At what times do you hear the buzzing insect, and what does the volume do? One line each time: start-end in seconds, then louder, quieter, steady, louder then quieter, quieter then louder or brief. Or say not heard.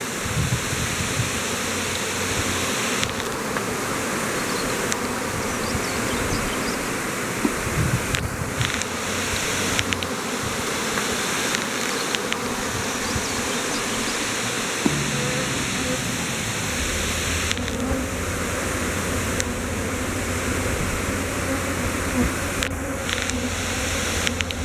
0.0-24.6 steady.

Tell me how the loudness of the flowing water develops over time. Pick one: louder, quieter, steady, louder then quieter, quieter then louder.
steady.